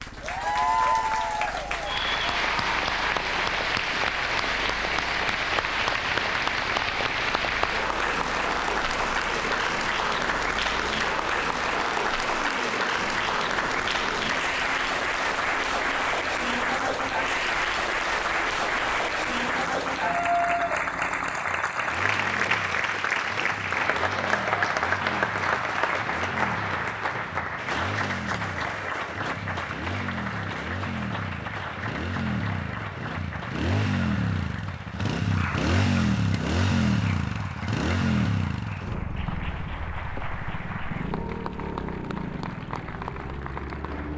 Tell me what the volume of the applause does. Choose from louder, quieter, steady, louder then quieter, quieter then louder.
quieter.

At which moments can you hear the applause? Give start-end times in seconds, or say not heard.
0.0-44.1.